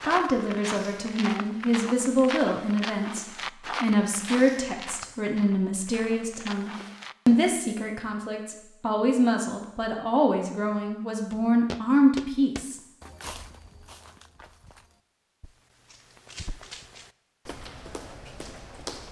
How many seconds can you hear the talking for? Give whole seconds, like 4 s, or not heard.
13 s.